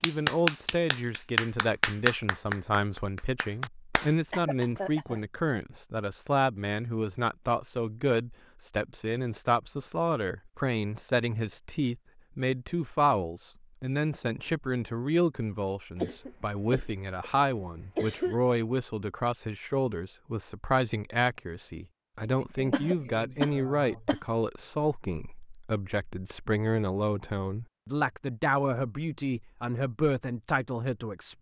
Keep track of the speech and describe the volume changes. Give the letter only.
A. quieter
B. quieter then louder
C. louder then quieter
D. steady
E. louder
D.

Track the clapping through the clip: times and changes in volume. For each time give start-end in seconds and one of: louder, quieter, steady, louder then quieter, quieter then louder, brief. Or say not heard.
0.0-4.1 quieter.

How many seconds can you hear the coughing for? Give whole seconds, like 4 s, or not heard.
5 s.